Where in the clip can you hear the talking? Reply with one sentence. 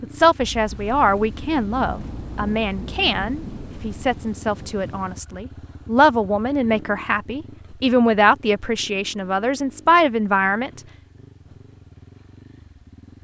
The talking can be heard from 0.0 to 10.8 s.